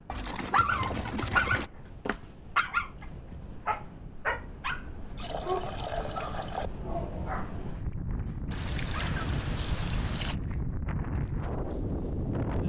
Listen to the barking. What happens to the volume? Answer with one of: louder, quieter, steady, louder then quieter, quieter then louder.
quieter.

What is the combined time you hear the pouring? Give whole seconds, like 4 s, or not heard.
5 s.